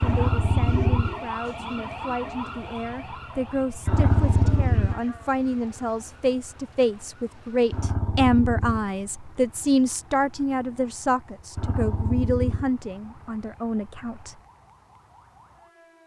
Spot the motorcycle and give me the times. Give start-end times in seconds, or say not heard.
0.0-14.3.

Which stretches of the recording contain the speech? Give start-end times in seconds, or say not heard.
0.0-14.4.